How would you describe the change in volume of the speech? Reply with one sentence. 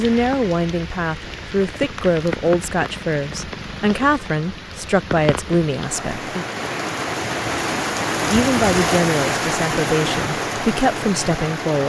The loudness of the speech stays about the same.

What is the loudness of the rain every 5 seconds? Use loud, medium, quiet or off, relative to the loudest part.
medium, loud, loud.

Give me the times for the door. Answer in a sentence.
The door can't be heard in this clip.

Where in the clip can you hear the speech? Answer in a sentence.
The speech can be heard from 0.0 to 6.5 s and from 8.2 to 11.8 s.